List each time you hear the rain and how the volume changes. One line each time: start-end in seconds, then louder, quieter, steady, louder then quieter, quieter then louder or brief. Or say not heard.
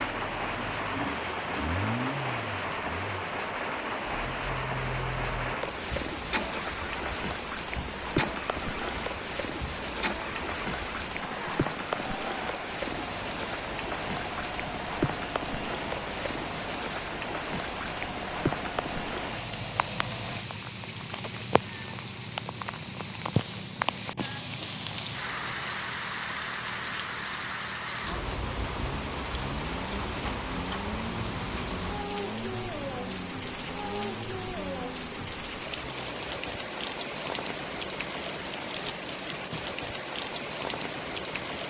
0.0-41.6 steady.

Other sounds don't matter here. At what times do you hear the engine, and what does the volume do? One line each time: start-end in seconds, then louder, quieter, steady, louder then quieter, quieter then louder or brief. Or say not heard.
0.0-41.6 quieter.